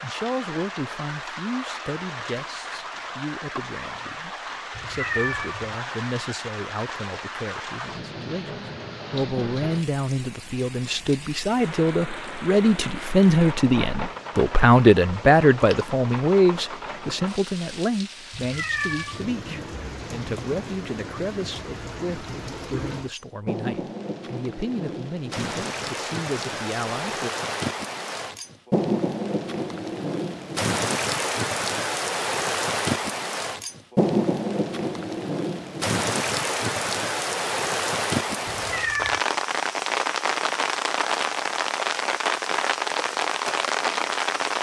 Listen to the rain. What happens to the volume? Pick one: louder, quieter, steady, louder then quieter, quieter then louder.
louder.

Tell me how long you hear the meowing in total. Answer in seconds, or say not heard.
3 s.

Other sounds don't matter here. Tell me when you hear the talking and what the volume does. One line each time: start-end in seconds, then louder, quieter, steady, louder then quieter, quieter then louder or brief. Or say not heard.
0.0-27.3 louder then quieter.